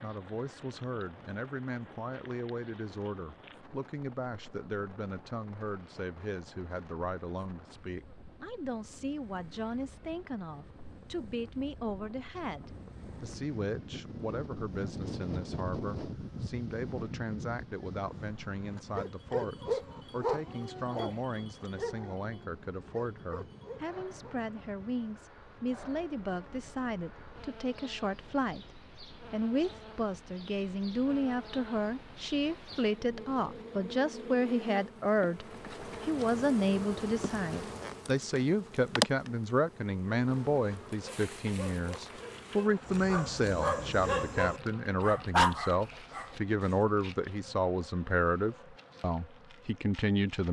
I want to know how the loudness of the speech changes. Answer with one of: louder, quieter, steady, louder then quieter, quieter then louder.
louder.